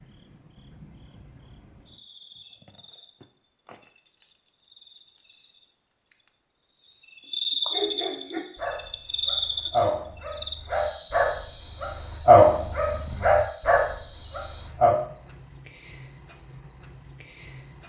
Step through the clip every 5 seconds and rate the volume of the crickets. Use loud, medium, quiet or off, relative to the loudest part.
quiet, loud, medium, medium.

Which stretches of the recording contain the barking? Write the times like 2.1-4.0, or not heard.
7.7-14.9.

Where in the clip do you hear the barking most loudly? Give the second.
12 s.